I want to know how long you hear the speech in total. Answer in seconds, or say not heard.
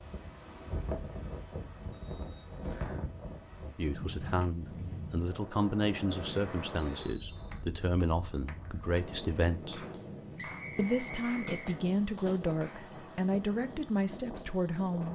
10 s.